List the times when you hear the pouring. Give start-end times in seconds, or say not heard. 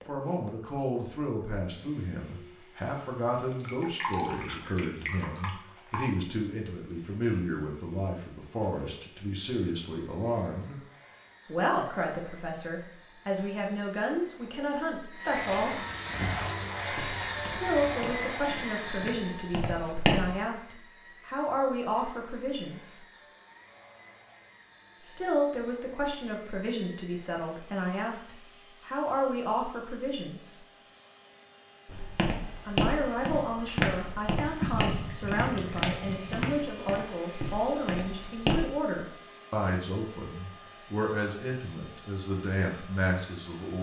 3.5-6.1, 15.3-18.1, 34.6-36.4.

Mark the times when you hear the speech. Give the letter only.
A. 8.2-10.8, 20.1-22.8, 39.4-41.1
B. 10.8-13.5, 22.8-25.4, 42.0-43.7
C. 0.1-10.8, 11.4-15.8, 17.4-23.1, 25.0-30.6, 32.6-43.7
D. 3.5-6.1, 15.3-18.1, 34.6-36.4
C.